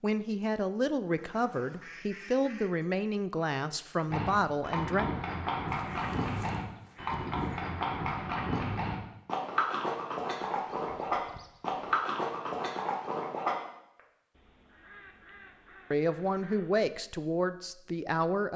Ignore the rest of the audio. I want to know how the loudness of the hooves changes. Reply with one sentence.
The loudness of the hooves stays about the same.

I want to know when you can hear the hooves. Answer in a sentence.
The hooves can be heard from 4.1 to 13.6 s.